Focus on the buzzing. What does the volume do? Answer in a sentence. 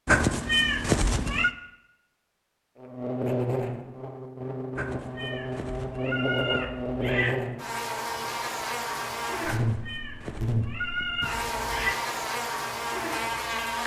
The loudness of the buzzing stays about the same.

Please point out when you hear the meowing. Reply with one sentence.
The meowing can be heard from 0.1 to 1.6 s, from 4.8 to 7.3 s and from 9.4 to 11.9 s.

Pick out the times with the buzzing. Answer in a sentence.
You can hear the buzzing from 2.8 to 13.8 s.